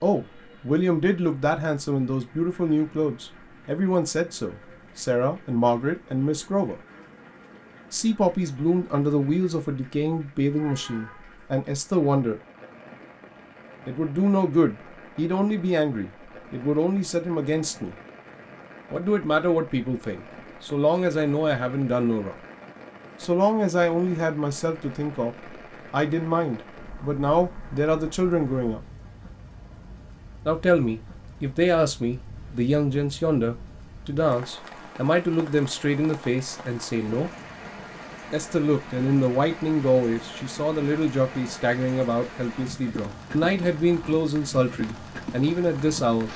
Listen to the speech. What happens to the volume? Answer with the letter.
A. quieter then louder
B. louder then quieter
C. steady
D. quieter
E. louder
C.